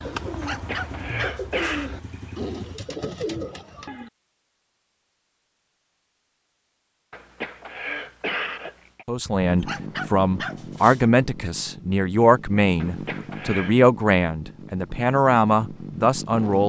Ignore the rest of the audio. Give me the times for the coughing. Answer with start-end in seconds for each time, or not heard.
0.5-1.9, 7.1-9.1, 12.8-13.8.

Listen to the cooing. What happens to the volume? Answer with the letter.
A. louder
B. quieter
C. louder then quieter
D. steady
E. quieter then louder
A.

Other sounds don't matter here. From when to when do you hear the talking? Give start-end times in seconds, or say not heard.
9.1-16.6.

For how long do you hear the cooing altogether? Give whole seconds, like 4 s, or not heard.
4 s.